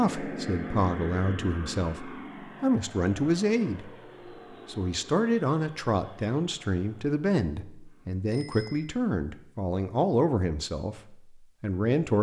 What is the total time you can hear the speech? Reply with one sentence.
You can hear the speech for 11 seconds altogether.